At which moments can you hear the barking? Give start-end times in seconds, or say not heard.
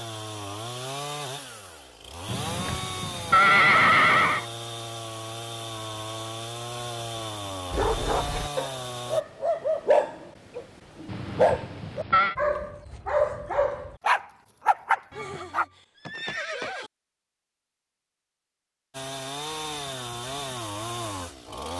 7.7-15.7.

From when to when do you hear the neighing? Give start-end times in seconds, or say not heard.
2.2-4.5, 11.1-12.3, 15.1-16.9.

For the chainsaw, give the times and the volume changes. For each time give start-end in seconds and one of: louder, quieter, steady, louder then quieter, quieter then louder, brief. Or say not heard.
0.0-9.2 steady
18.9-21.7 brief.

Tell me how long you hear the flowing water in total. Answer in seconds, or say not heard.
not heard.